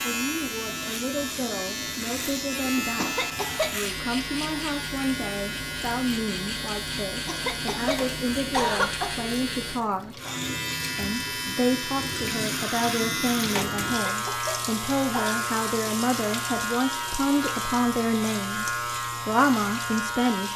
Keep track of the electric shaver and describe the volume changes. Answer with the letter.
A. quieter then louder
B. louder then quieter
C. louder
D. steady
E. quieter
D.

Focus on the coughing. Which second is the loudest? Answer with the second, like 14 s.
9 s.